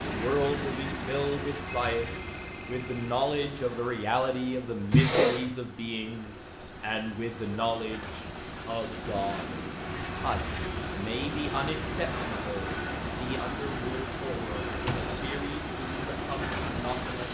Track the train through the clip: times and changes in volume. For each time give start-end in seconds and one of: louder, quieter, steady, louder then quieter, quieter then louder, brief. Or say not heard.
0.0-17.2 quieter then louder.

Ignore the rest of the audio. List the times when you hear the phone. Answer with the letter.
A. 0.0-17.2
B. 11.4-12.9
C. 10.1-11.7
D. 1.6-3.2
D.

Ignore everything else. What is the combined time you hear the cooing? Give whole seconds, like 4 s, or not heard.
not heard.